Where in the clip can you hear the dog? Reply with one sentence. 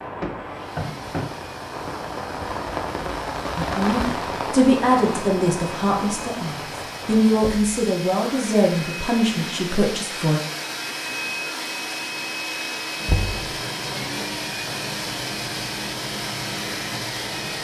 The dog can't be heard in this clip.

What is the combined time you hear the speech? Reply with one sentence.
The speech can be heard for 7 seconds in total.